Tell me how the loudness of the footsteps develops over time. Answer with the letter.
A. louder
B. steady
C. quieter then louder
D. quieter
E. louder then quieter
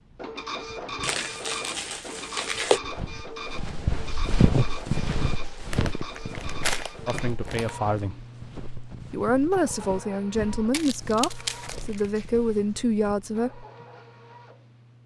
D.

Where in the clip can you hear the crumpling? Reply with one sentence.
The crumpling can be heard from 1.0 to 2.8 s, from 5.7 to 7.8 s and from 10.7 to 12.2 s.